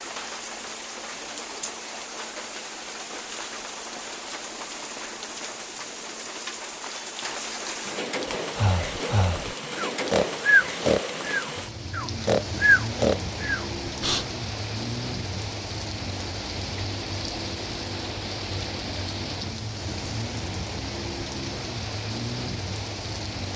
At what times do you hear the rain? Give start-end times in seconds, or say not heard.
0.0-23.5.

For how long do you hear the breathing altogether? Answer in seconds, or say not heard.
6 s.